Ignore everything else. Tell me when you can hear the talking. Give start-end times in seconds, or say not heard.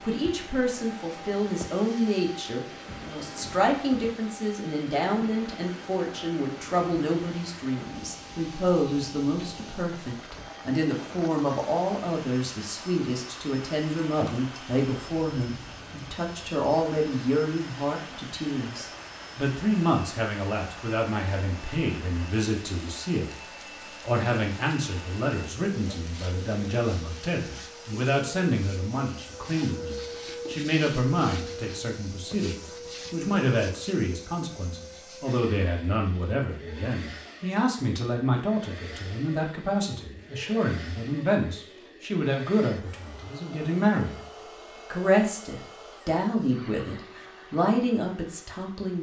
0.0-44.2, 44.9-48.9.